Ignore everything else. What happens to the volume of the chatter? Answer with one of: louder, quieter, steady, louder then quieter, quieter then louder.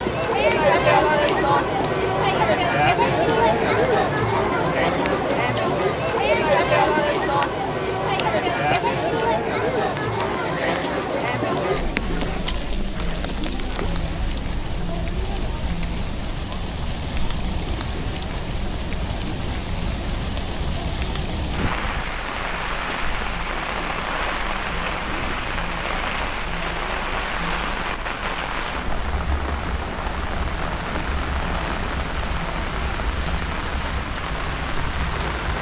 quieter.